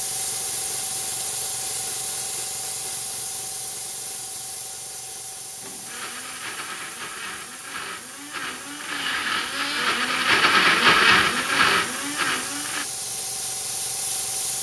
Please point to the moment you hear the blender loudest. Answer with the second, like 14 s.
11 s.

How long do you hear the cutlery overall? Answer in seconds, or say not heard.
not heard.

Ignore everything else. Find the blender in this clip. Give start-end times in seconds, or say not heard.
5.6-12.8.